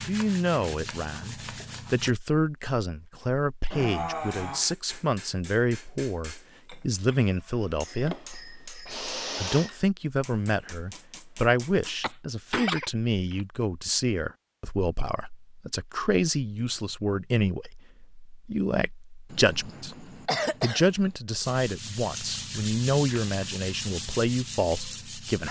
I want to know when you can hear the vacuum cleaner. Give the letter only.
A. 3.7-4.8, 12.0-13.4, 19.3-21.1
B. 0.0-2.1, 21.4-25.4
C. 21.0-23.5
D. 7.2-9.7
D.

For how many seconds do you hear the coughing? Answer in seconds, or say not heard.
4 s.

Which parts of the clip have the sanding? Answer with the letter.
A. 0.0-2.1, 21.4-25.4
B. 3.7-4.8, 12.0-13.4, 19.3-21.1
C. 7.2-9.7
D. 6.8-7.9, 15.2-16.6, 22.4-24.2
A.